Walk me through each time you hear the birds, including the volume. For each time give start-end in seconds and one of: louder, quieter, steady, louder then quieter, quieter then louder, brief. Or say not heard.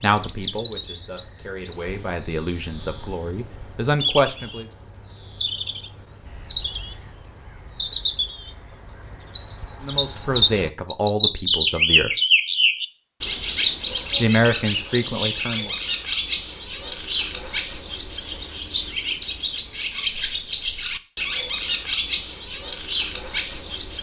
0.0-23.9 louder then quieter.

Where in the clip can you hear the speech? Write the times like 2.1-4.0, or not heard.
0.0-4.7, 9.8-12.1, 14.2-15.7.